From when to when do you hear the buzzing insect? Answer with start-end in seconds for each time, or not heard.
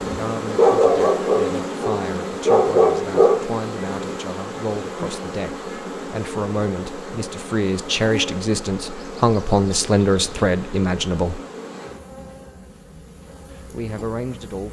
0.0-14.6.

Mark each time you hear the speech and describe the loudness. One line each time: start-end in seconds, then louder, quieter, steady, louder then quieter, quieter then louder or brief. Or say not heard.
0.1-11.4 louder
13.7-14.6 brief.